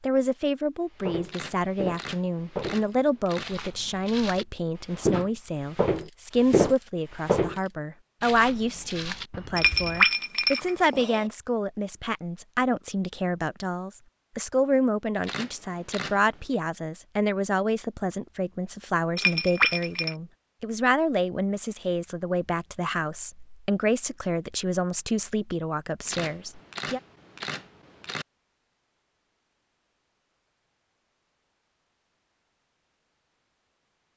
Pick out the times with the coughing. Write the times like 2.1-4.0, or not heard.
not heard.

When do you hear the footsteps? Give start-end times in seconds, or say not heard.
1.0-10.1.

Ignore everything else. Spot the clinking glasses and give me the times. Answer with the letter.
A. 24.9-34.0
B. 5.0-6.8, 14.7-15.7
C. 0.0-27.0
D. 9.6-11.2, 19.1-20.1
D.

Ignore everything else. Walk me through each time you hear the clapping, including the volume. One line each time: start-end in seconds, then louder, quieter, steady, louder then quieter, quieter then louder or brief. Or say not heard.
not heard.